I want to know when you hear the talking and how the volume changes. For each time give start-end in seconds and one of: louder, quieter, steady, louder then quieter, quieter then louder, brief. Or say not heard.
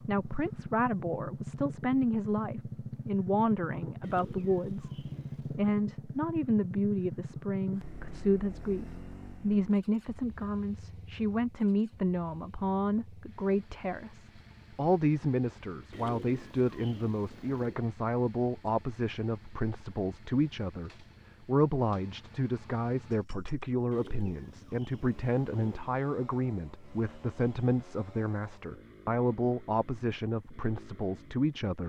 0.1-31.8 steady.